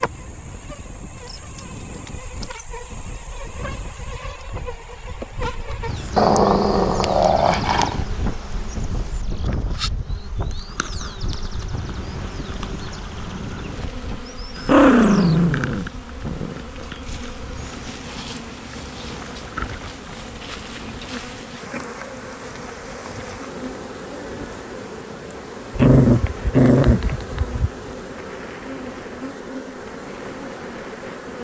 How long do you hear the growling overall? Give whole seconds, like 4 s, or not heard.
6 s.